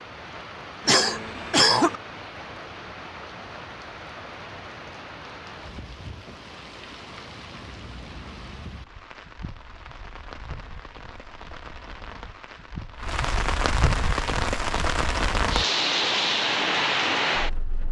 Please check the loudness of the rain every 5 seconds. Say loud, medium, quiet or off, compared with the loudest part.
quiet, quiet, medium, loud.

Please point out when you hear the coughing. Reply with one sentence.
You can hear the coughing from 0.8 to 2.0 s.